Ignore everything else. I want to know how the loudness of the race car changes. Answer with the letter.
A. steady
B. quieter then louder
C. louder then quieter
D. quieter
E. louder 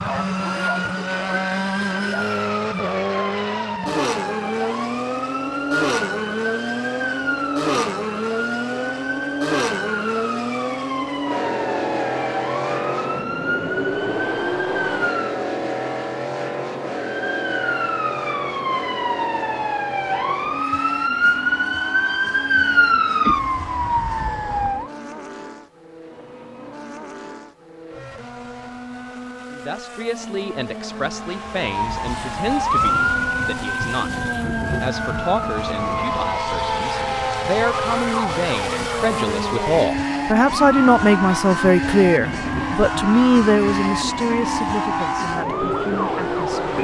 B.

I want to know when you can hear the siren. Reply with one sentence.
The siren can be heard from 0.2 to 15.4 s, from 17.0 to 24.9 s and from 31.6 to 46.8 s.